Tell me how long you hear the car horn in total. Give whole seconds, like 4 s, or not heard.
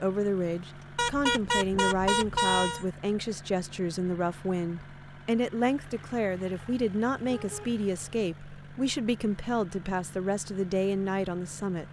3 s.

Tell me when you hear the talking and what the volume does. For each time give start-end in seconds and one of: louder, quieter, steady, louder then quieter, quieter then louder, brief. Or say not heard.
0.0-11.8 steady.